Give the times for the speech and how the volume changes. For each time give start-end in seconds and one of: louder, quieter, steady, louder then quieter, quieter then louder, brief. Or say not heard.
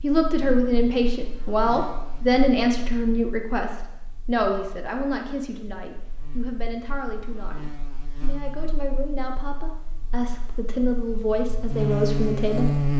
0.0-12.8 quieter then louder.